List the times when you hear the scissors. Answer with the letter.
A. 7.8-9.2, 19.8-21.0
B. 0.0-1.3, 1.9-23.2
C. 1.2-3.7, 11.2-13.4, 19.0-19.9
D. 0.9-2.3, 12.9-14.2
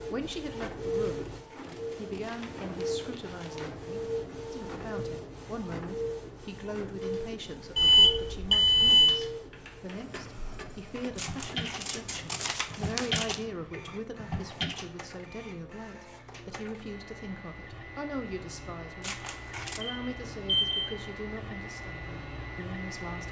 C.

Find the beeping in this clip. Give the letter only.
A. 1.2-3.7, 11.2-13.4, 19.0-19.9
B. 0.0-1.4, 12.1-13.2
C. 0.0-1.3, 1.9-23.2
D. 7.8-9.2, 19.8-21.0
D.